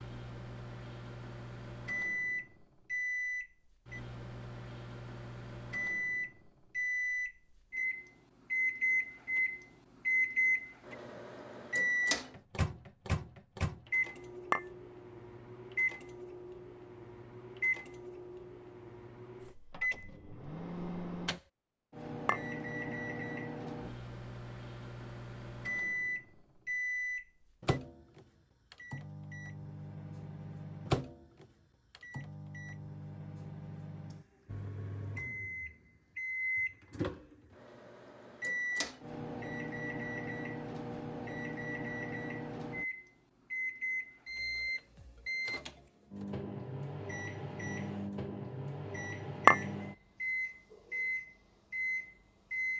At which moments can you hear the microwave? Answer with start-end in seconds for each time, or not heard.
0.0-52.7.